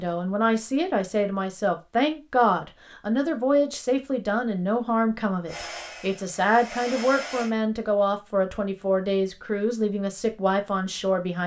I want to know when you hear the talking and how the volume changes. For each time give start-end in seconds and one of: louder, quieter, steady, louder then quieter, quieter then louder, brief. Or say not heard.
0.0-11.4 steady.